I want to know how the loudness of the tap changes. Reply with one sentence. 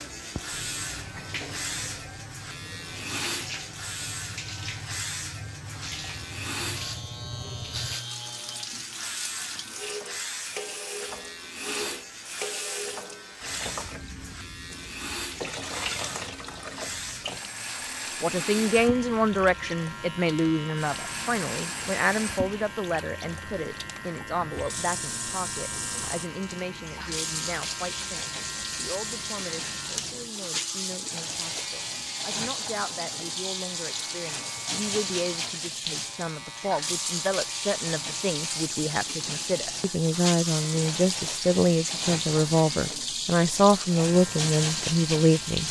The volume of the tap goes up.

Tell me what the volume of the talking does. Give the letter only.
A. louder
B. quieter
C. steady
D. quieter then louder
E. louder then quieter
D.